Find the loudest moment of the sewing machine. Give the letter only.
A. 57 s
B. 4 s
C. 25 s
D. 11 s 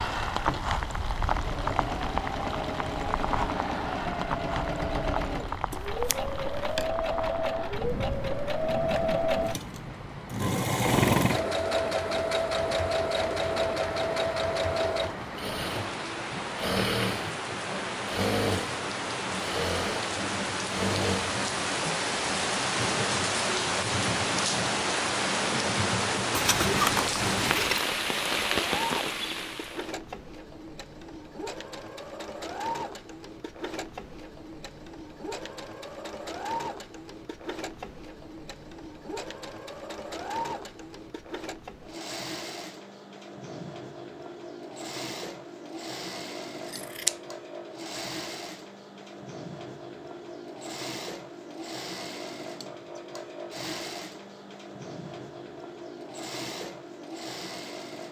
D.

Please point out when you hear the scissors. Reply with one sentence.
You can hear the scissors from 5.7 to 6.8 s, from 26.3 to 27.9 s and from 46.7 to 47.1 s.